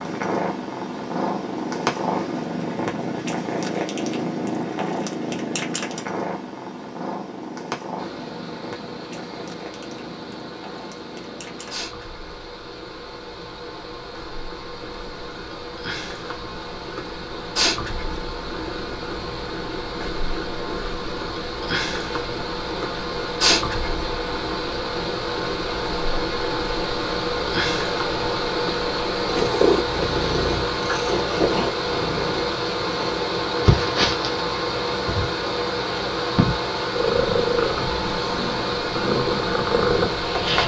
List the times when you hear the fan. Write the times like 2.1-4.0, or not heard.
8.0-40.6.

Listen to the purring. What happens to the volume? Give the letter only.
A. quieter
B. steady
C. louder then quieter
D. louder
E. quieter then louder
E.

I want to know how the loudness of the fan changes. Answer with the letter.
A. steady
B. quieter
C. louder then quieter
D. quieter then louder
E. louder
E.